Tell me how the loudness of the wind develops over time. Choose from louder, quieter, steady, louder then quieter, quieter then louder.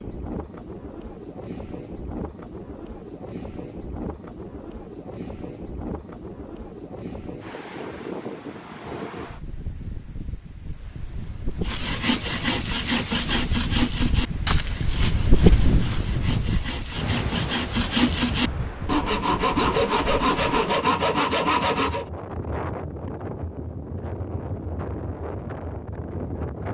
louder then quieter.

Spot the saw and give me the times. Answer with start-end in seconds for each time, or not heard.
11.6-22.1.